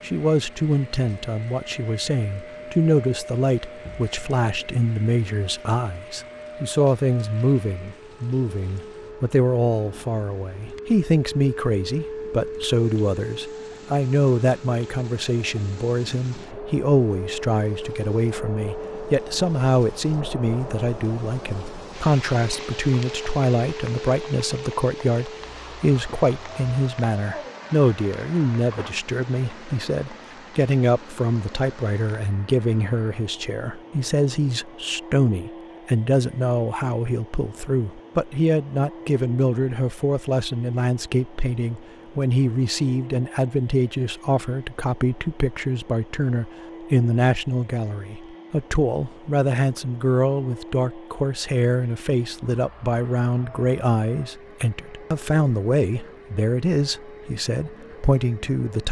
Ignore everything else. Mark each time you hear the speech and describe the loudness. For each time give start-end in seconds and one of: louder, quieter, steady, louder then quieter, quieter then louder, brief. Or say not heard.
0.0-58.8 steady.